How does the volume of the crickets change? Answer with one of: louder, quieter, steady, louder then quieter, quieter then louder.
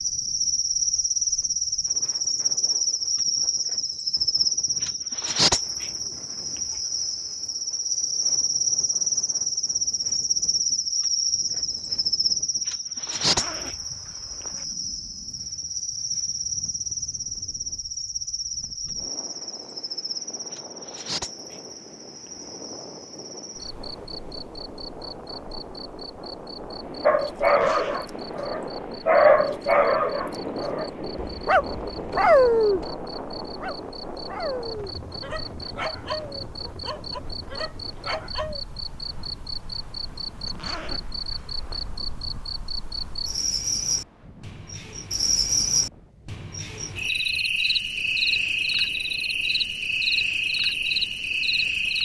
quieter then louder.